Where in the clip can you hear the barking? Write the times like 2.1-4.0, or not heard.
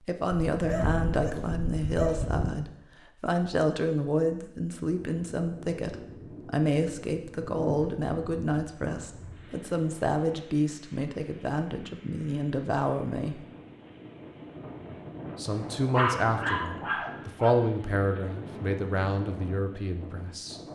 0.5-2.5, 15.9-17.6.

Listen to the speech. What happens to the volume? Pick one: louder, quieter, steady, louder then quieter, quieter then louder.
steady.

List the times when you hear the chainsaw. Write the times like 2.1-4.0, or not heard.
not heard.